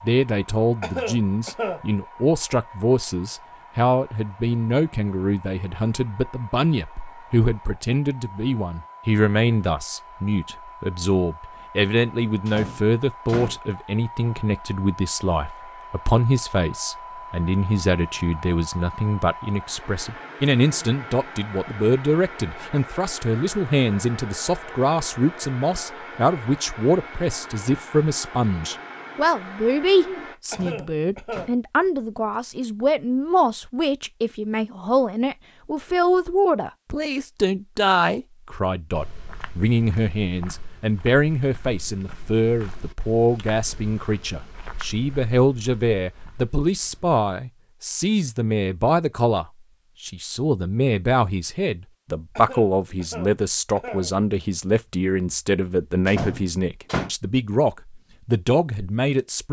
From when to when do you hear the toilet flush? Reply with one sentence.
The toilet flush can't be heard in this clip.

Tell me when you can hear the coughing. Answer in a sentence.
You can hear the coughing from 0.8 to 1.8 s, from 30.5 to 31.5 s and from 52.4 to 54.1 s.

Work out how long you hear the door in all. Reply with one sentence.
You can hear the door for 3 seconds altogether.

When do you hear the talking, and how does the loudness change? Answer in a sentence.
You can hear the talking from 0.0 to 59.4 s, at a steady volume.